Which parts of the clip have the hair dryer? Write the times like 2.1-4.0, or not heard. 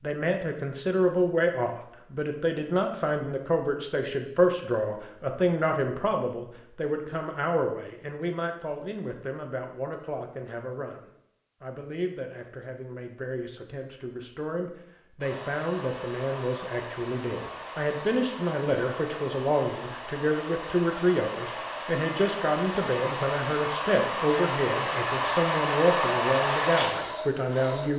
15.2-27.9.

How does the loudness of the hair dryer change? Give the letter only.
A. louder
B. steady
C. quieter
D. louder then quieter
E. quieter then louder
A.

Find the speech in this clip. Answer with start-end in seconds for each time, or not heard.
0.0-27.9.